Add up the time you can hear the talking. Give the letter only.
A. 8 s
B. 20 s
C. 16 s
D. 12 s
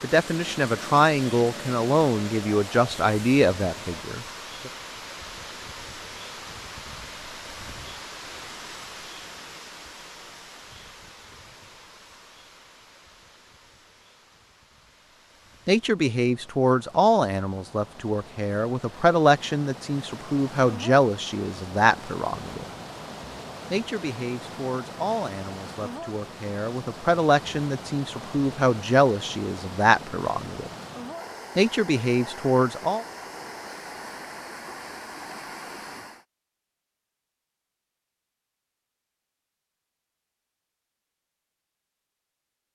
B.